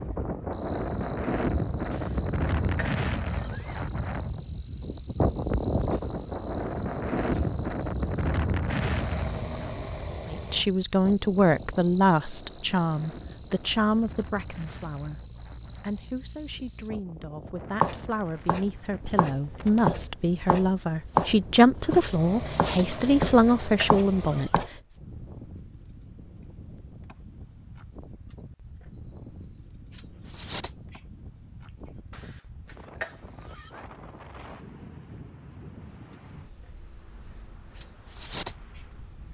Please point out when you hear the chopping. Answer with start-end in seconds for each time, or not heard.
17.8-24.6.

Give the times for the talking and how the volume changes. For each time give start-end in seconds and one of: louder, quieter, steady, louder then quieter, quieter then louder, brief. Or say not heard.
10.2-24.6 quieter then louder.